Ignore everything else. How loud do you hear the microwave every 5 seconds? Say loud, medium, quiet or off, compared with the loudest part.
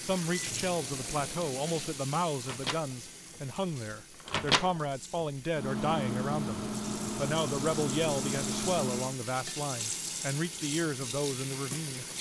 loud, loud, off.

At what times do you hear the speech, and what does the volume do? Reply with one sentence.
The speech can be heard from 0.0 to 12.1 s, at a steady volume.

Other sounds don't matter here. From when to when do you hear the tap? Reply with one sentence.
You can hear the tap from 0.0 to 12.1 s.